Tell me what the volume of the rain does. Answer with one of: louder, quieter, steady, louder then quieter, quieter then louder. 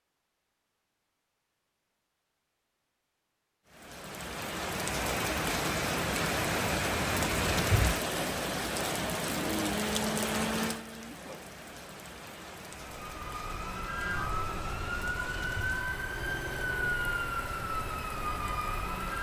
quieter.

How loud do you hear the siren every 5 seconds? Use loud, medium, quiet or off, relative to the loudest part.
off, off, loud, loud.